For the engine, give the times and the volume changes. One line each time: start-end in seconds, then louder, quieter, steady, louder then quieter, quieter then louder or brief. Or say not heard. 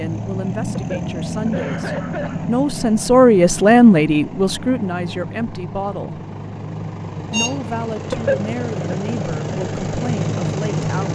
0.0-11.1 quieter then louder.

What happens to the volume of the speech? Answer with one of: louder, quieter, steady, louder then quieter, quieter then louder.
louder then quieter.